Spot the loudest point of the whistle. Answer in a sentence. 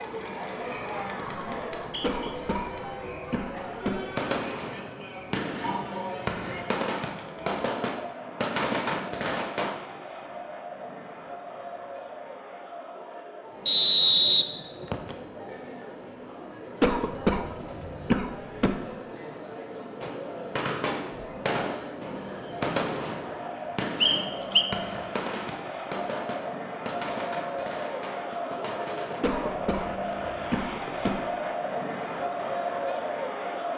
The volume of the whistle peaks at 14 seconds.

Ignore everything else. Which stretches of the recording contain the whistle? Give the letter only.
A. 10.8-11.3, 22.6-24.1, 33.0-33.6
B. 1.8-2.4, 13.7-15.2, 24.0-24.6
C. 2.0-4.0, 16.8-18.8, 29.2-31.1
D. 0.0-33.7
B.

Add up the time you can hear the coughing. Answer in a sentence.
The coughing can be heard for 6 seconds in total.